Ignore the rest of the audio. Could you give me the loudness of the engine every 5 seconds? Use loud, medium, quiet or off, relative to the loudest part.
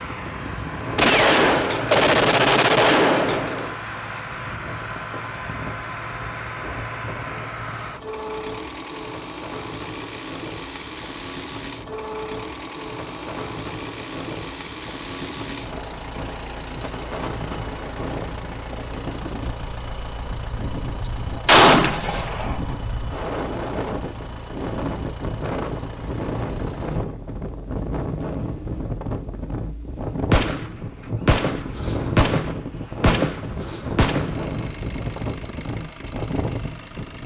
loud, loud, loud, loud, medium, medium, medium, medium.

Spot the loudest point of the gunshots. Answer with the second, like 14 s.
22 s.